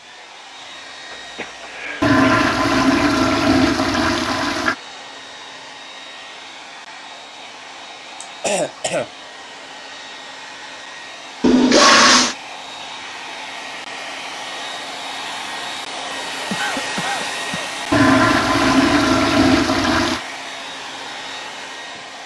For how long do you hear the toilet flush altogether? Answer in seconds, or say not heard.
6 s.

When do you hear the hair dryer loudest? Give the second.
17 s.